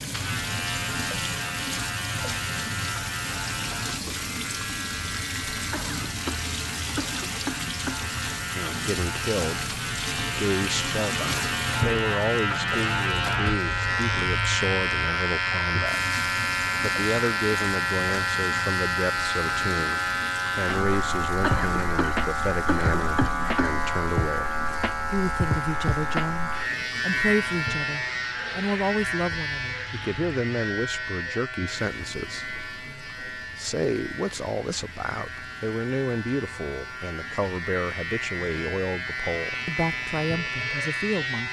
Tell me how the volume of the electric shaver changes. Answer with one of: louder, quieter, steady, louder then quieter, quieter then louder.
louder then quieter.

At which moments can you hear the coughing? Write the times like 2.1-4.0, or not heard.
5.7-8.0, 21.4-23.9.